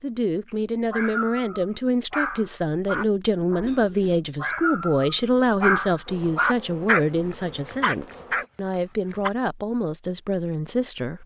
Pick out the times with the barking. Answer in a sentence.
The barking can be heard from 0.5 to 9.3 s.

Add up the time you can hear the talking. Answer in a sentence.
The talking can be heard for 11 seconds in total.